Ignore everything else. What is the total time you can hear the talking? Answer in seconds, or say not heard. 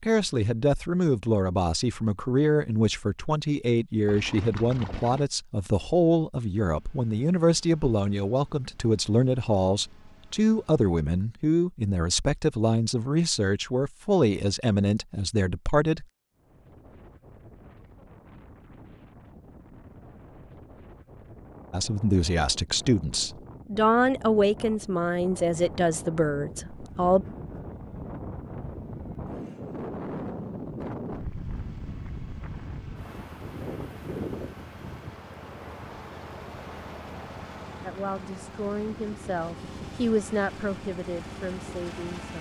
26 s.